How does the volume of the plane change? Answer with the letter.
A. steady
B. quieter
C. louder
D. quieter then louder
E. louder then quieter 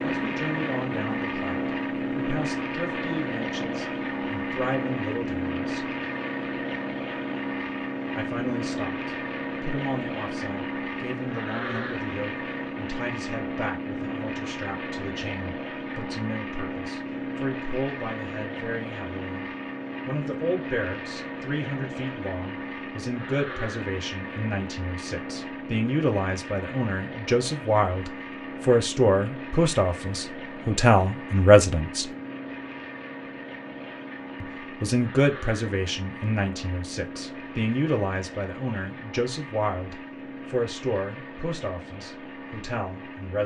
B.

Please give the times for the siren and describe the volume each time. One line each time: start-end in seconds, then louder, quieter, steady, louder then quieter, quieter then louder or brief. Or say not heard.
not heard.